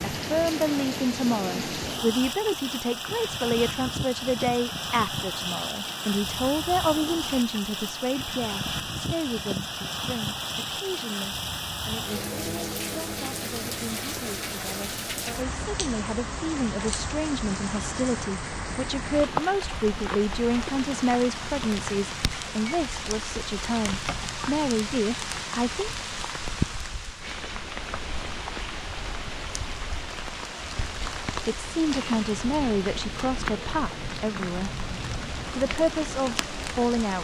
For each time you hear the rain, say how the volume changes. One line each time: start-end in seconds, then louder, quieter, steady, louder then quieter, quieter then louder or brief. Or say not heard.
0.0-37.1 steady.